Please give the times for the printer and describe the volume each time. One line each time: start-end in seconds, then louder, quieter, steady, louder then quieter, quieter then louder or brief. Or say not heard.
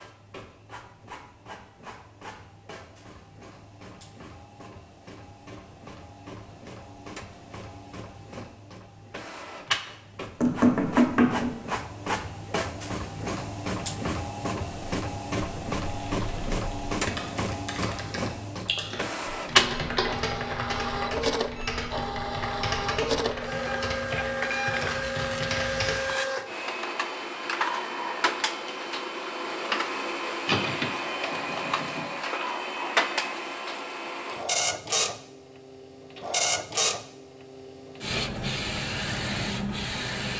0.0-40.3 louder.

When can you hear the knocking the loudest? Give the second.
11 s.